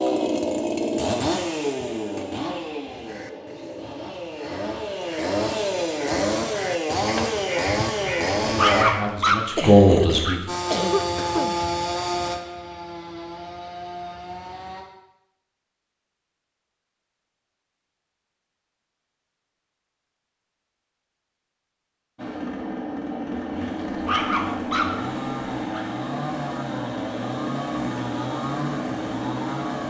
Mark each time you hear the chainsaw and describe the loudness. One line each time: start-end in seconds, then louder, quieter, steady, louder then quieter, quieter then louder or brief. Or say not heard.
0.0-8.8 quieter then louder
10.4-14.8 quieter
22.1-29.8 steady.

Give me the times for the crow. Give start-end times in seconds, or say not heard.
2.9-9.2.